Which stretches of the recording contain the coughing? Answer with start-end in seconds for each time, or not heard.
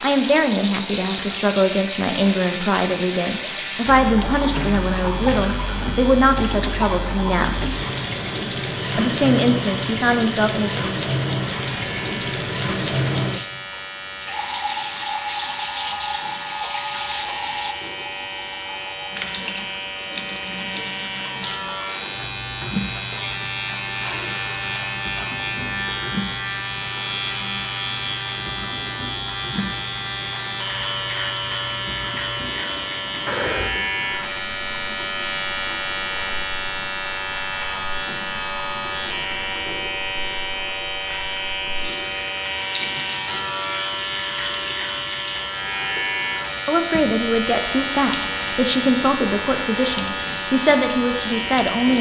33.2-33.8.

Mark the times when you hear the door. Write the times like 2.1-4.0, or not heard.
not heard.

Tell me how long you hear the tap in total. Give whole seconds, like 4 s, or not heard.
52 s.